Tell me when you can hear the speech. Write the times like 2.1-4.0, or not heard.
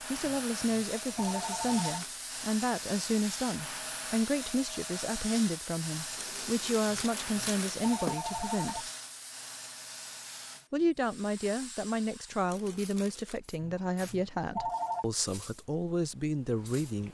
0.1-8.8, 10.7-17.0.